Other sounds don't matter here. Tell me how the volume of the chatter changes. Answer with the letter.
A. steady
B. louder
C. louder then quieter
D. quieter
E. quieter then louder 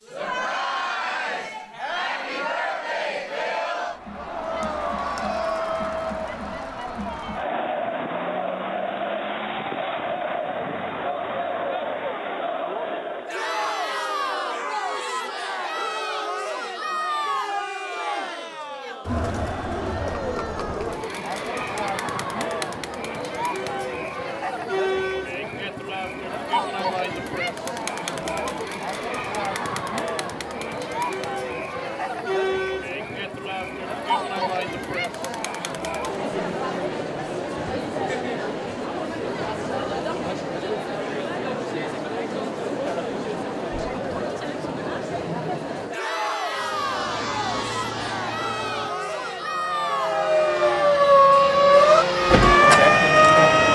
A.